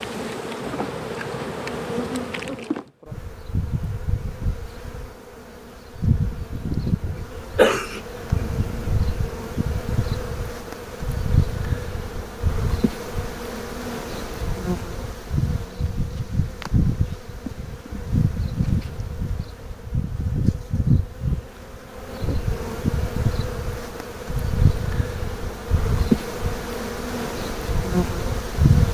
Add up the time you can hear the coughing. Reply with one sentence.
You can hear the coughing for 2 seconds altogether.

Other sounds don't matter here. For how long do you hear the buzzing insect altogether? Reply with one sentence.
The buzzing insect can be heard for 29 seconds in total.